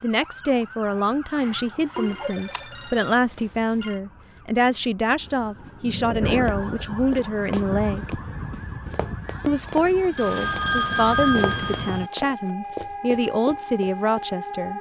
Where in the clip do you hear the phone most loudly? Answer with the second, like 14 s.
11 s.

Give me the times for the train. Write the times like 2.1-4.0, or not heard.
not heard.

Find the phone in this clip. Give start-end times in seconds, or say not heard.
1.4-4.0, 10.2-12.1.